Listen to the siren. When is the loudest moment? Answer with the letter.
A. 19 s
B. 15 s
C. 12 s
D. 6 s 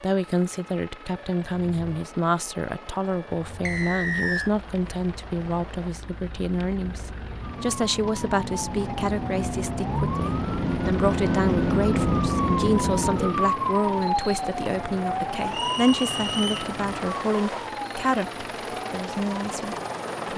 C.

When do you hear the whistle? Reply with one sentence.
You can hear the whistle from 3.6 to 4.5 s and from 15.5 to 16.7 s.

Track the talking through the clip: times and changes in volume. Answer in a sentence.
You can hear the talking from 0.0 to 20.3 s, at a steady volume.